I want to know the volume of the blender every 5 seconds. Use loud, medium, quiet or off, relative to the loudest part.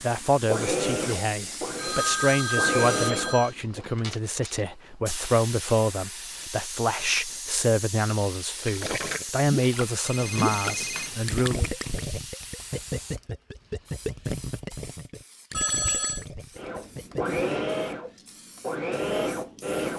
loud, off, off, loud.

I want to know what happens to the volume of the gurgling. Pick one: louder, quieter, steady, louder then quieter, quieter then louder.
quieter.